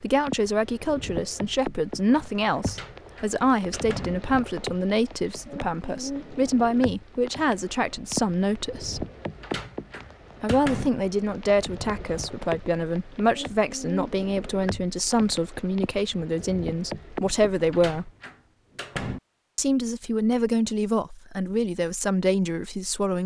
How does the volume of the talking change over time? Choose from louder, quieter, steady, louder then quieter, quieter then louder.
steady.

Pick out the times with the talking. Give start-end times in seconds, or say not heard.
0.0-9.1, 10.4-18.1, 19.6-23.2.